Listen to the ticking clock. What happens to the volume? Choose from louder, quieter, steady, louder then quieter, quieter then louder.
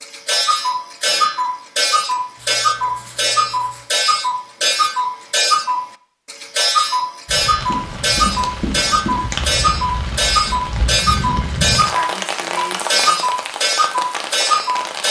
steady.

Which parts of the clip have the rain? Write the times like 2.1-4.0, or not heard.
7.2-15.0.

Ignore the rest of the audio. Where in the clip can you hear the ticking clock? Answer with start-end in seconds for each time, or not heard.
0.0-15.0.